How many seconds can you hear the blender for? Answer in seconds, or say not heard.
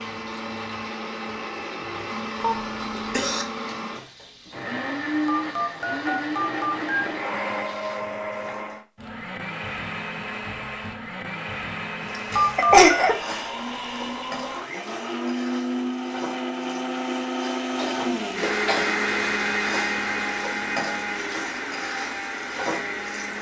23 s.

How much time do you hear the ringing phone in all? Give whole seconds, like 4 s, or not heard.
2 s.